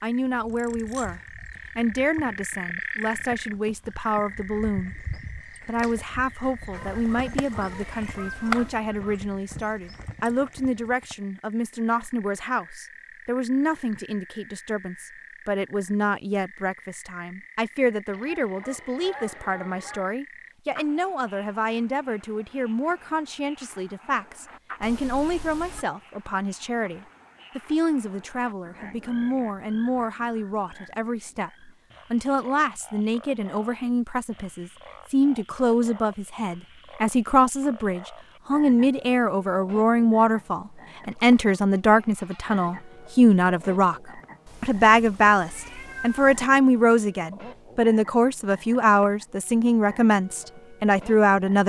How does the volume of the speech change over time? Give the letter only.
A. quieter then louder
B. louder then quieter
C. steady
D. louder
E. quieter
D.